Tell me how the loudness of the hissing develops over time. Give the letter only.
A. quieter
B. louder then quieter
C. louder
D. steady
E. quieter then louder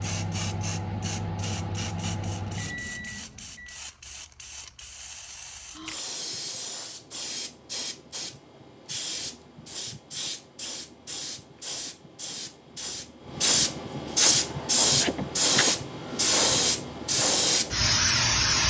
C.